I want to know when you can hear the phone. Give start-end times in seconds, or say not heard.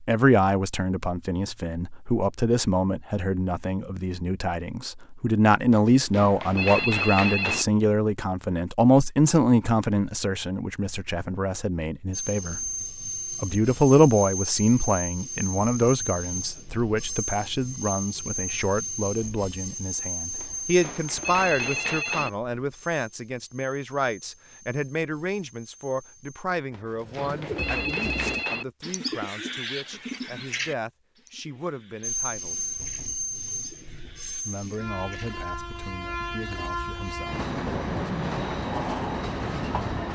5.7-7.7, 20.4-22.3, 26.7-28.6.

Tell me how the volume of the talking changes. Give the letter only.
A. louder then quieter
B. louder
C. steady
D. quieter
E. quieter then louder
D.